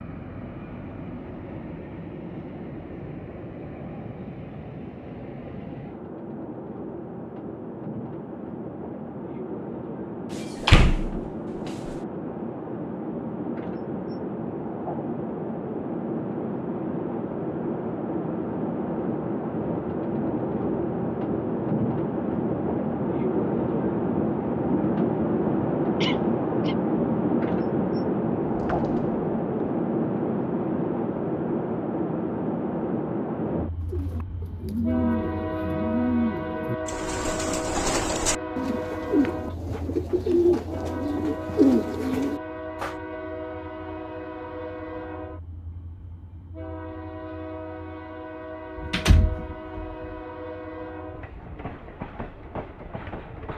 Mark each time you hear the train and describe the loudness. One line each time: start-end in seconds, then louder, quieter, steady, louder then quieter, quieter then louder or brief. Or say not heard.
0.0-53.5 louder then quieter.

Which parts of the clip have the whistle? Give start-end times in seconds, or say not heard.
not heard.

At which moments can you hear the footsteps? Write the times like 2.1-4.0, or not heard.
not heard.